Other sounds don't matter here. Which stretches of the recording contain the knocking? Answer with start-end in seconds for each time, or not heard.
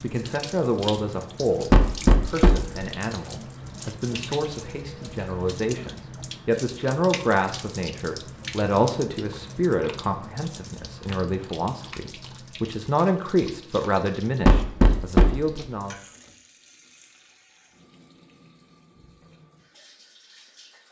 1.7-2.9, 14.4-15.6.